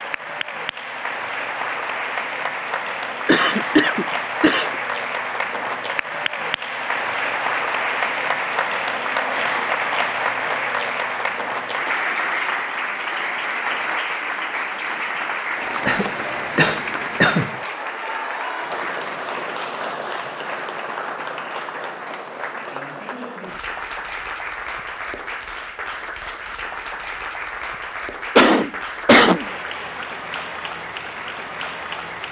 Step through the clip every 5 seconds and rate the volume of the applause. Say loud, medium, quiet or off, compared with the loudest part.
loud, loud, loud, loud, medium, medium, medium.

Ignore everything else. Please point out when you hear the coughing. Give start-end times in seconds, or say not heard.
3.2-4.7, 15.8-17.5, 28.4-29.4.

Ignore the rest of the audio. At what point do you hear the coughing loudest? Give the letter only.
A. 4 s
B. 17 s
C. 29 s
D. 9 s
C.